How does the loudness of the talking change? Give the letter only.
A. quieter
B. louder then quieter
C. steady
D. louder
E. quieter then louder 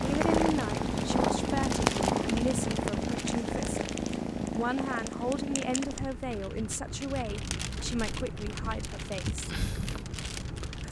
A.